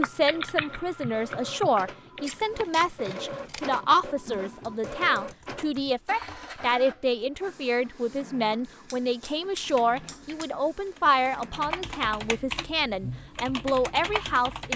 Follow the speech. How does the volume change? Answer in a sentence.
The loudness of the speech stays about the same.